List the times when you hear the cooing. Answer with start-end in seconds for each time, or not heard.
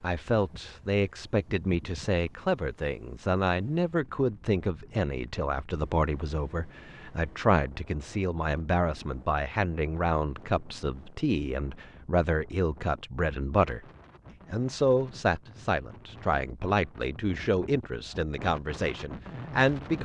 not heard.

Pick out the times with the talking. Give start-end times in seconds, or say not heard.
0.0-13.8, 14.5-20.0.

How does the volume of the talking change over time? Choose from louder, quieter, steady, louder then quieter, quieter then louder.
steady.